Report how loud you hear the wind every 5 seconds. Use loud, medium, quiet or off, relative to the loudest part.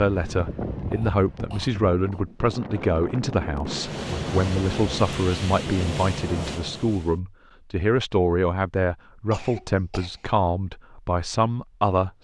loud, loud, off.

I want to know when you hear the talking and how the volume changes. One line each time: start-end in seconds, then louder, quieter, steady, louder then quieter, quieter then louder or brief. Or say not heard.
0.0-12.1 steady.